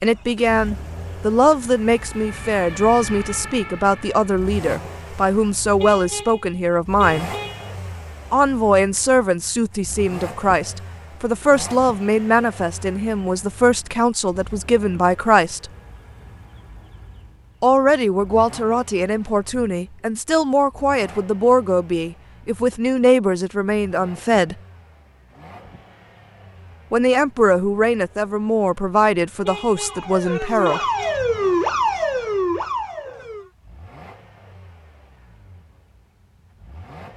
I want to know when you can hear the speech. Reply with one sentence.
The speech can be heard from 0.0 to 7.3 s, from 8.3 to 15.7 s, from 17.6 to 24.6 s and from 26.9 to 30.8 s.